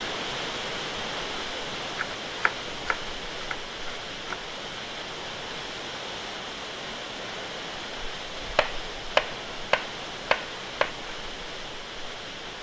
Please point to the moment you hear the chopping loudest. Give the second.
9 s.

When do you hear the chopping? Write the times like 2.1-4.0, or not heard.
1.9-4.3, 8.6-10.9.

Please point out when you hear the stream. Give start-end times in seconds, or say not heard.
0.0-12.5.